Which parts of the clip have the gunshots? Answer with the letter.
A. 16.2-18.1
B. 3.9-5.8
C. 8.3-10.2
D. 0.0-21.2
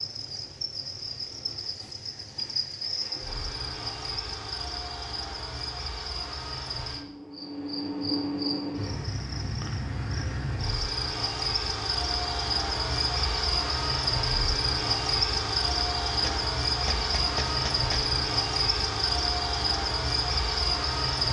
A.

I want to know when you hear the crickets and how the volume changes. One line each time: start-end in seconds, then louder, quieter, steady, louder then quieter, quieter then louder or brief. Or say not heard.
0.0-21.2 louder.